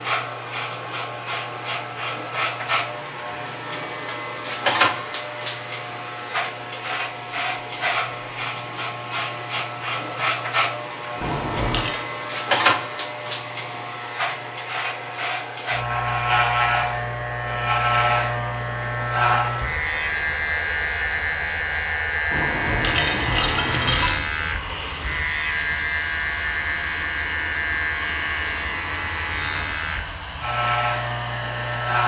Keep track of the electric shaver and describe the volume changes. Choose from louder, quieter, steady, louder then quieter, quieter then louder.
steady.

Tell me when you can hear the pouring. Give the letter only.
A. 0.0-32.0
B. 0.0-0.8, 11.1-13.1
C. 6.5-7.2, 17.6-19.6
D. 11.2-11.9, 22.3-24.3
D.